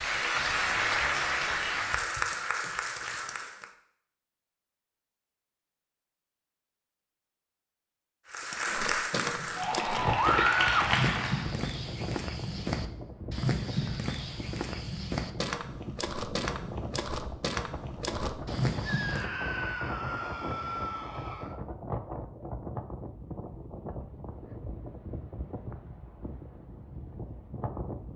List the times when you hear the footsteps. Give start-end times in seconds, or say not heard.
8.7-19.3.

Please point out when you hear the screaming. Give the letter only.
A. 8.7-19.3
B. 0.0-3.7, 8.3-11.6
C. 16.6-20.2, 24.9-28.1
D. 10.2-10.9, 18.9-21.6
D.